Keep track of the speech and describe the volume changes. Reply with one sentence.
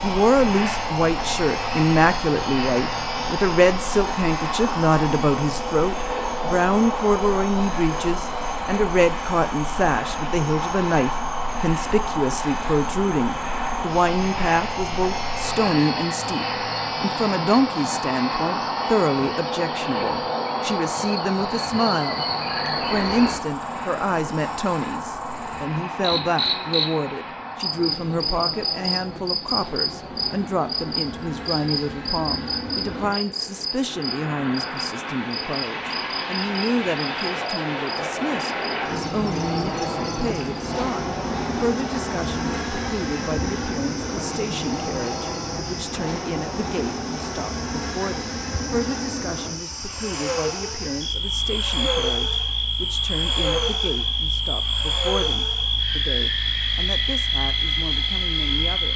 The volume of the speech goes down.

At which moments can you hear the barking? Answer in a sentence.
The barking can't be heard in this clip.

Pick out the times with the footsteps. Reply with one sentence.
The footsteps can't be heard in this clip.